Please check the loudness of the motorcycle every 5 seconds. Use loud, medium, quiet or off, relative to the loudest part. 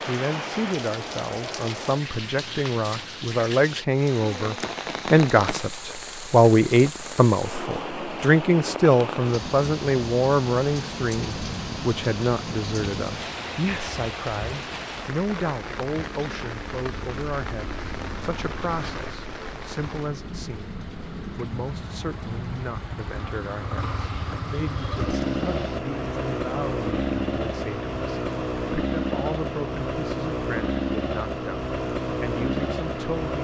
off, off, off, quiet, medium, loud, loud.